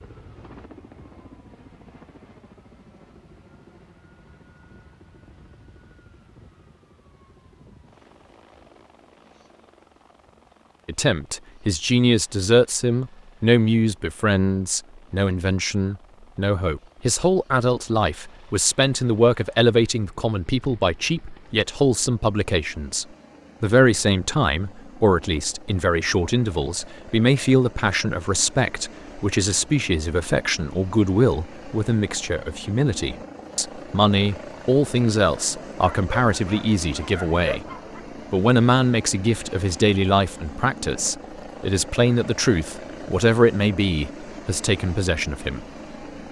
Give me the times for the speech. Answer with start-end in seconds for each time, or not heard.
10.8-37.6, 38.3-45.6.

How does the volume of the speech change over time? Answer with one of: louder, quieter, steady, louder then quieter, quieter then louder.
steady.